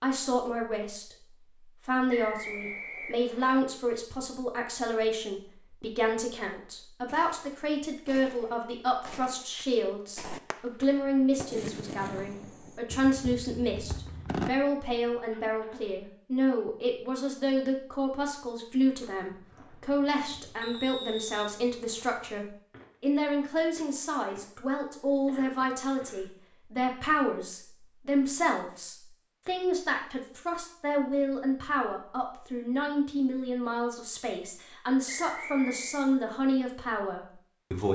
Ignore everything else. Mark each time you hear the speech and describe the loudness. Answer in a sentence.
The speech can be heard briefly from 0.0 to 1.1 s; and from 1.9 to 37.9 s, at a steady volume.